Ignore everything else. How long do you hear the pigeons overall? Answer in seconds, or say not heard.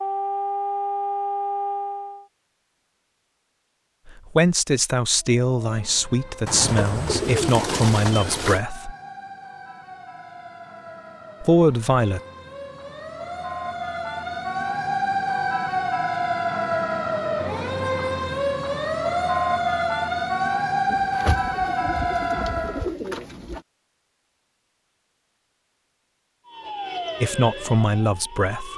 5 s.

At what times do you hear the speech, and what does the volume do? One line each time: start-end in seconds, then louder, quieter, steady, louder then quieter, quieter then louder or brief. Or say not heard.
4.3-8.9 steady
11.4-12.2 brief
27.2-28.7 brief.